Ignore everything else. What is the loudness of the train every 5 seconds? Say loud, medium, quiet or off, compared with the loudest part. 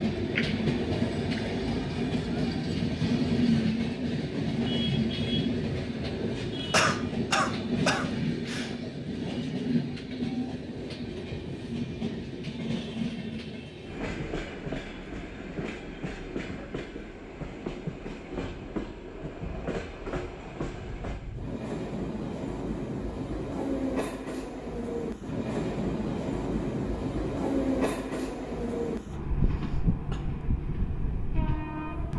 loud, loud, medium, medium, medium, loud, medium.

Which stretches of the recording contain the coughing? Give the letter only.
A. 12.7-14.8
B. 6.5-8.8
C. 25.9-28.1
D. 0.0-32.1
B.